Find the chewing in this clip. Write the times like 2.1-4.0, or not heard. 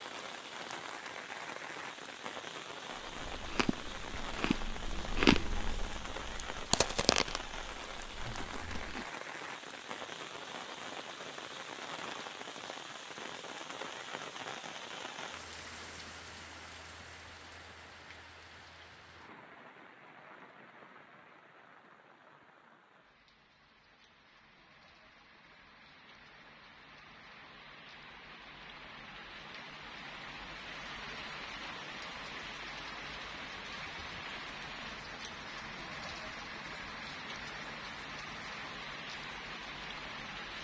3.0-9.1.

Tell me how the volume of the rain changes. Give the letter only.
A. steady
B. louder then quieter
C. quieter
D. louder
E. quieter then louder
E.